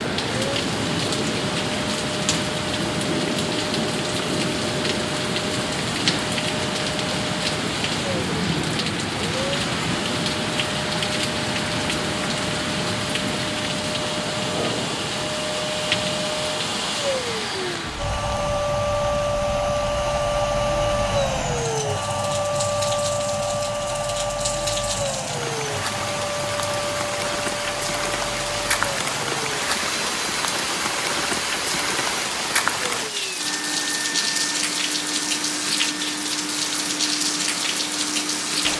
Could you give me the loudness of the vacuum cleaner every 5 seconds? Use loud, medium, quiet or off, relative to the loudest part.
medium, medium, medium, loud, loud, medium, medium, medium.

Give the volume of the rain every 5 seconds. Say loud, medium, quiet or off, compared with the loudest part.
loud, loud, loud, medium, medium, loud, loud, loud.